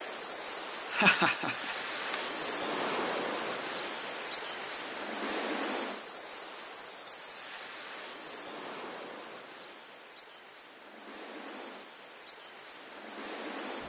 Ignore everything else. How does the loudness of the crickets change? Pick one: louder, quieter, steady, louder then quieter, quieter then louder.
quieter.